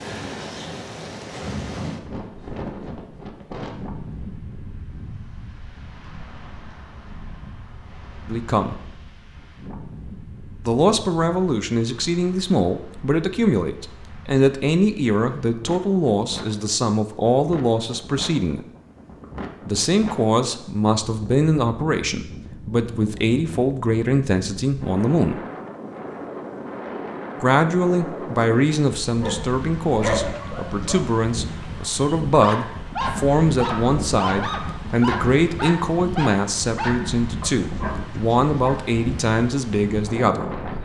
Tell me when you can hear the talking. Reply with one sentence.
You can hear the talking from 8.2 to 8.8 s, from 10.7 to 18.6 s, from 19.6 to 25.4 s and from 27.4 to 40.5 s.